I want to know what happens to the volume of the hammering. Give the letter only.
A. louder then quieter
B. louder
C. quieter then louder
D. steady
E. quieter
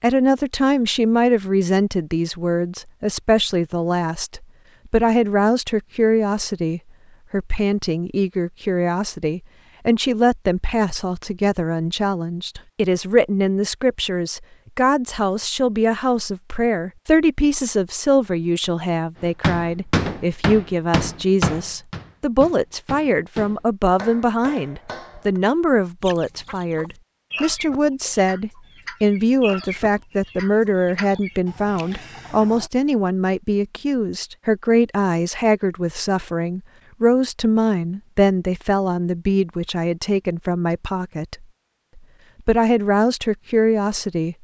E.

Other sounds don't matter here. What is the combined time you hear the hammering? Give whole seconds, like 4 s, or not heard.
6 s.